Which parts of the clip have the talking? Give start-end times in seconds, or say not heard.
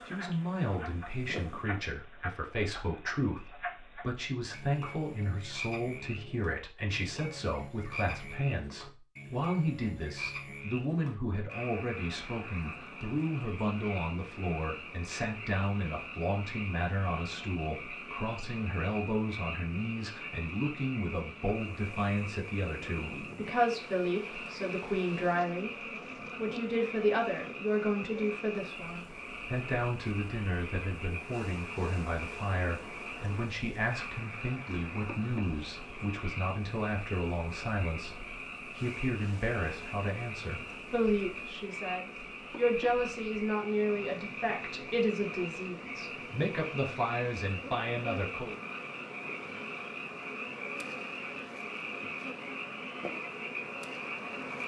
0.1-48.5.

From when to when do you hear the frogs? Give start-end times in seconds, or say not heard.
0.0-54.6.